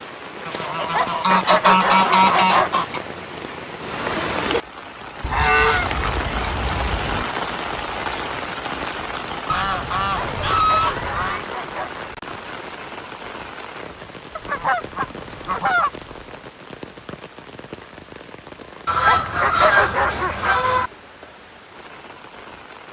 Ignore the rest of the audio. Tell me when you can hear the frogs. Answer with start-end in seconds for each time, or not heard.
not heard.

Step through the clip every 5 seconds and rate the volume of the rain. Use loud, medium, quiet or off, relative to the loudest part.
loud, loud, medium, medium, quiet.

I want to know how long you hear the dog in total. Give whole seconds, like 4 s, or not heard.
5 s.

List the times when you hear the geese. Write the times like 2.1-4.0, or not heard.
0.5-3.0, 5.2-7.2, 9.4-11.4, 14.3-16.1, 18.9-20.9.